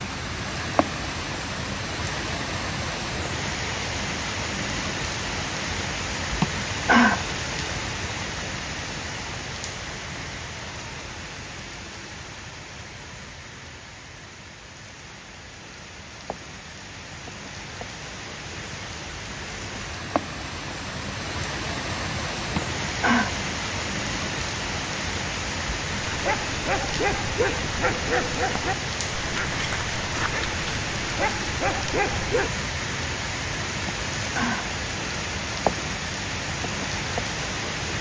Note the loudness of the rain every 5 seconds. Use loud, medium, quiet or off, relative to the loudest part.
loud, loud, medium, medium, loud, loud, loud, loud.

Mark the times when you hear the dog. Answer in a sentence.
The dog can be heard from 26.1 to 32.5 s.